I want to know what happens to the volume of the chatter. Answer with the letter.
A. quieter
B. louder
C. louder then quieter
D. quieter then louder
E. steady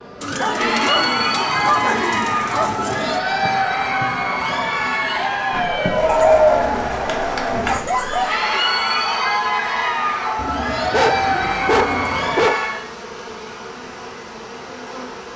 E.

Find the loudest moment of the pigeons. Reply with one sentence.
The loudest moment of the pigeons is at 6 seconds.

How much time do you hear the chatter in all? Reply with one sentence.
The chatter can be heard for 13 seconds in total.